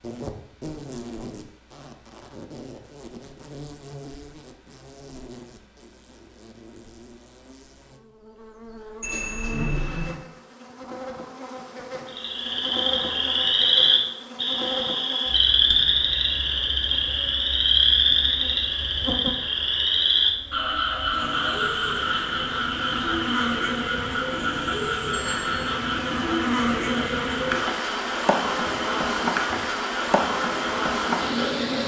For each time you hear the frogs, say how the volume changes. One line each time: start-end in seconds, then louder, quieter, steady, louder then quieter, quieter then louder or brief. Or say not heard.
12.1-31.6 quieter.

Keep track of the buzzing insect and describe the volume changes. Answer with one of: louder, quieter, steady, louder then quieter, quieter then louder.
louder.